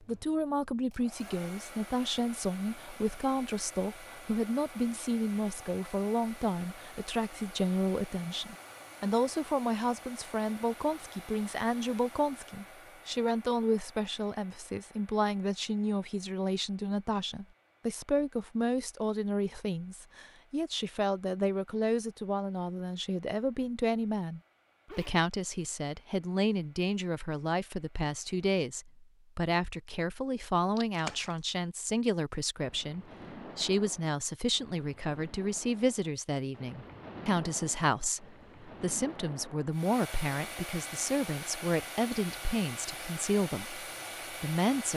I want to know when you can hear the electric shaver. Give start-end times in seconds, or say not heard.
not heard.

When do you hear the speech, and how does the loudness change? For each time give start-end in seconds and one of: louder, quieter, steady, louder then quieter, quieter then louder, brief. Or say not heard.
0.0-44.9 steady.